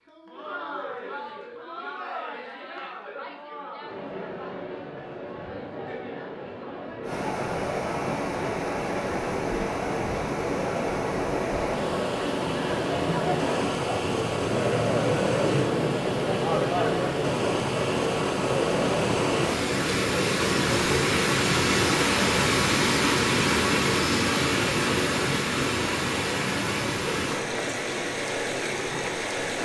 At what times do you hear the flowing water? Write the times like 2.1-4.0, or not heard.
7.0-29.5.